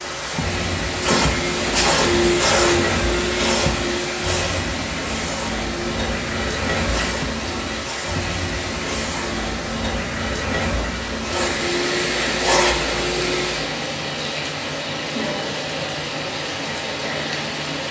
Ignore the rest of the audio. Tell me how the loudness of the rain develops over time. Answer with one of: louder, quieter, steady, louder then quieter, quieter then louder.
steady.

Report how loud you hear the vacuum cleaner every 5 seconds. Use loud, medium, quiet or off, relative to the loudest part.
loud, medium, loud, off.